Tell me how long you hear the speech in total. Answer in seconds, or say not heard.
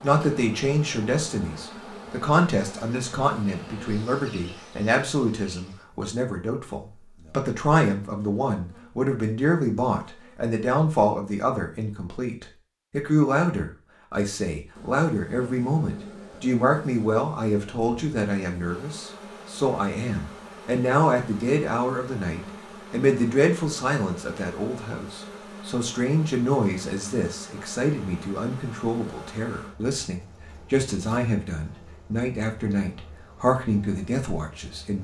35 s.